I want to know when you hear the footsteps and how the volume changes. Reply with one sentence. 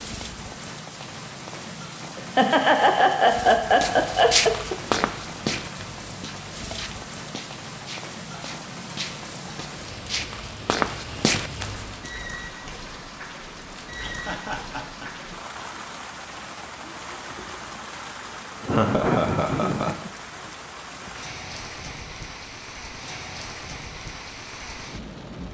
You can hear the footsteps from 3.6 to 12.1 s, getting quieter then louder.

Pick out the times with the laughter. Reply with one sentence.
The laughter can be heard from 2.1 to 4.8 s, from 14.0 to 15.2 s and from 18.6 to 19.9 s.